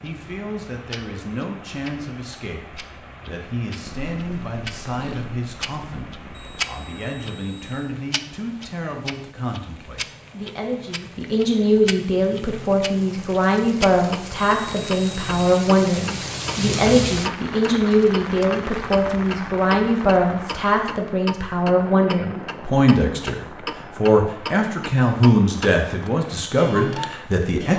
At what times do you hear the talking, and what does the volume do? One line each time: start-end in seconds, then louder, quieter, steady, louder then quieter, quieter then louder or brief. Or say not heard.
0.0-27.7 louder.